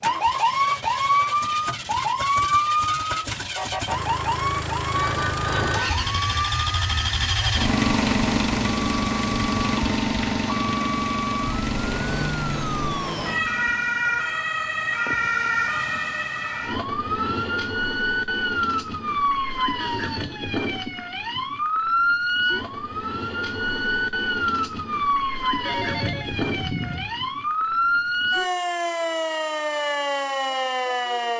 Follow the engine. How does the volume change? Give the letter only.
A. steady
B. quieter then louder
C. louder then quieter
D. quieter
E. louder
C.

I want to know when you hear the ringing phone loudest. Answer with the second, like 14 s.
6 s.